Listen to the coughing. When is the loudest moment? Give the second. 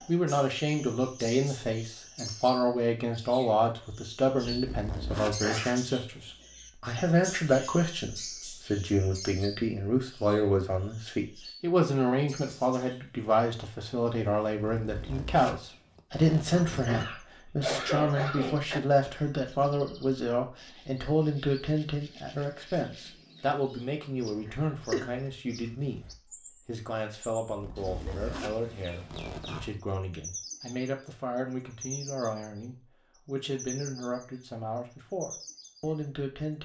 18 s.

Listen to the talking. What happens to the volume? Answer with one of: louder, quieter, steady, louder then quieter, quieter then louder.
quieter.